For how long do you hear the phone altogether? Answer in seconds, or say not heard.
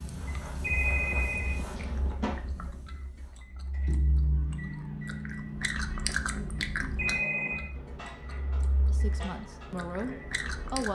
2 s.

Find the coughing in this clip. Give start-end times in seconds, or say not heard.
not heard.